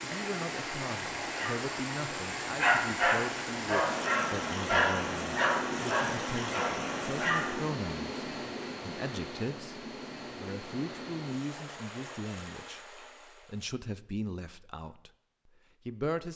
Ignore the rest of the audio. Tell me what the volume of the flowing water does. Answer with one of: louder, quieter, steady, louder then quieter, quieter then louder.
quieter.